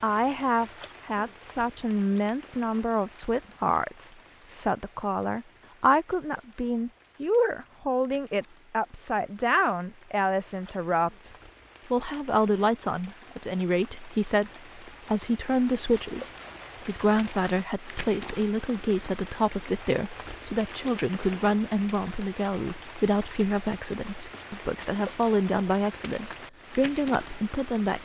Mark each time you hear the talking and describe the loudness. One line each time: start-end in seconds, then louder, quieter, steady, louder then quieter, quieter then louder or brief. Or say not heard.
0.0-11.3 steady
11.9-27.9 steady.